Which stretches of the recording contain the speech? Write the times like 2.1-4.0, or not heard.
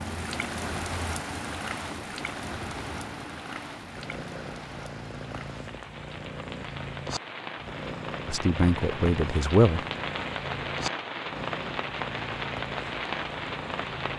8.2-9.8.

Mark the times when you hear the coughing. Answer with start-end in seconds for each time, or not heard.
not heard.